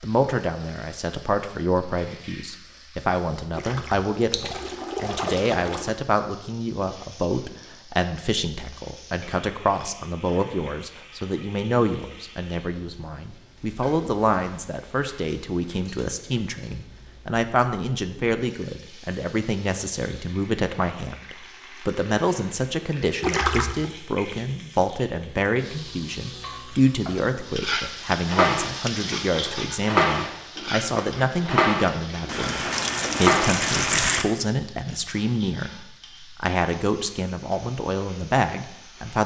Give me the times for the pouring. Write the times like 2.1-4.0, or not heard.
3.5-5.9, 23.2-23.9, 32.2-34.2.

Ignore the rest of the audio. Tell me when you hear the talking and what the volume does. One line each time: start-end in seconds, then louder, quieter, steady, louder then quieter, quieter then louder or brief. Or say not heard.
0.0-39.2 steady.